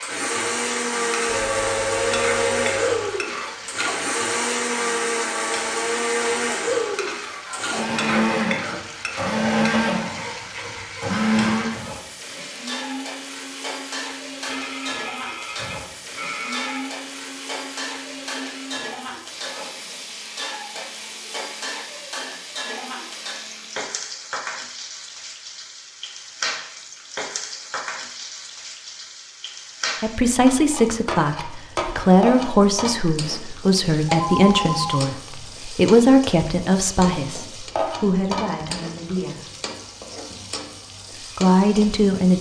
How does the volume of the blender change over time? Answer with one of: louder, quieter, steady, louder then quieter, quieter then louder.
quieter.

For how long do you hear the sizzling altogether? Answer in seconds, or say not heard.
42 s.